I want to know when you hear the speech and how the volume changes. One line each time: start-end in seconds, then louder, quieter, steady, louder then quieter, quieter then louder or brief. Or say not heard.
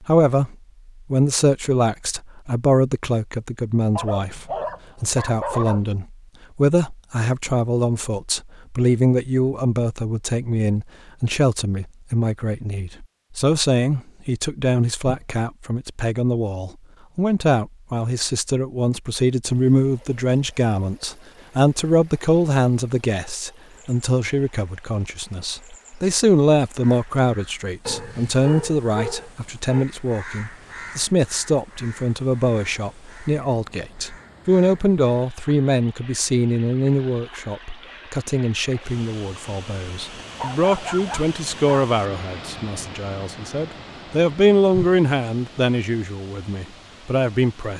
0.0-47.7 steady.